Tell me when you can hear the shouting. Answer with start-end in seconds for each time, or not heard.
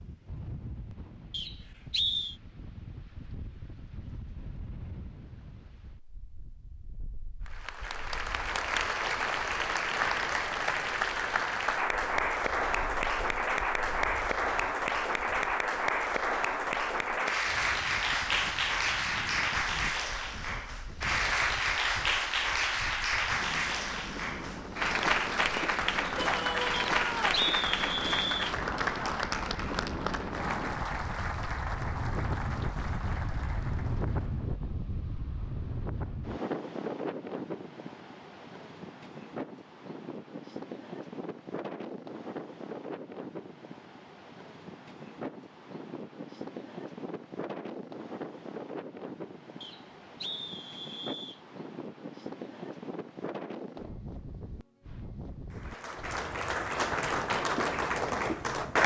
26.1-27.4.